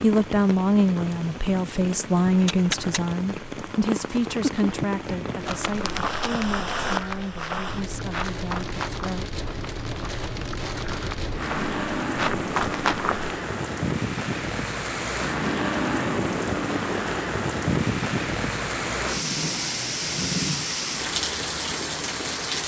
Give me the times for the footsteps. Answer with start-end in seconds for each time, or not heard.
5.4-13.3.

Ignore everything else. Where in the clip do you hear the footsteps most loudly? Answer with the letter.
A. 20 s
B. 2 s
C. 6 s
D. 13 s
D.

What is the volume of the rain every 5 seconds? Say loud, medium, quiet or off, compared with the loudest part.
medium, medium, loud, loud, loud.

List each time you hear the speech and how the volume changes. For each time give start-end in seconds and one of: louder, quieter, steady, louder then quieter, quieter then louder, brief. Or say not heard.
0.0-9.3 quieter.